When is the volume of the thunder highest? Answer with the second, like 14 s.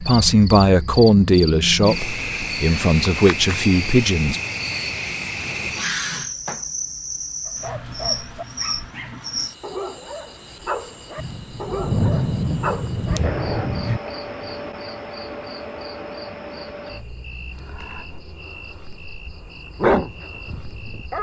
12 s.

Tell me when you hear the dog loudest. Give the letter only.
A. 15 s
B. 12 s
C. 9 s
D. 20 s
D.